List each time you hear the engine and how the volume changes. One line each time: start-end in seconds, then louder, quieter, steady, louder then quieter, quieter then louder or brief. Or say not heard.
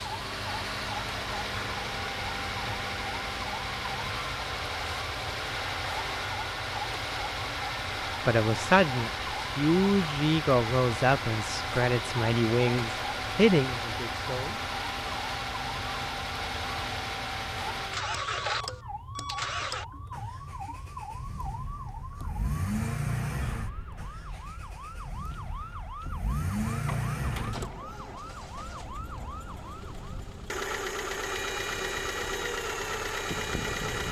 0.0-34.0 steady.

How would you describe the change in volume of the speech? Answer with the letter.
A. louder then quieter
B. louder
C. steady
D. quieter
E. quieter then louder
C.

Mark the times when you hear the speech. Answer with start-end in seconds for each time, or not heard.
8.2-14.6.